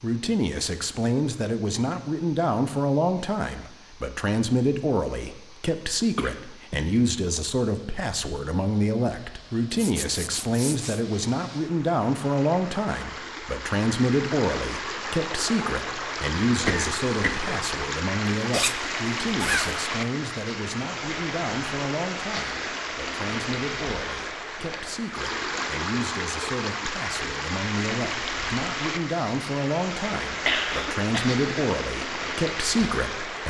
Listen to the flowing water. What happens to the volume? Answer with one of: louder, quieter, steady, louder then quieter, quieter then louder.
louder.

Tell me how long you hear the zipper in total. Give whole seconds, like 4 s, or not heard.
3 s.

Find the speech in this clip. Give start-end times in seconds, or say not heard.
0.0-33.4.